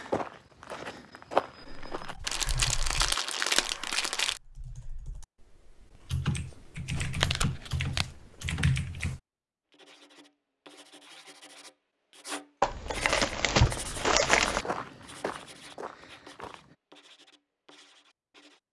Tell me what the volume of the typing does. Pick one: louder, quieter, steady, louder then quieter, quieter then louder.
quieter then louder.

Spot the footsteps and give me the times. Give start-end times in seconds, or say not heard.
0.0-2.1, 13.8-16.8.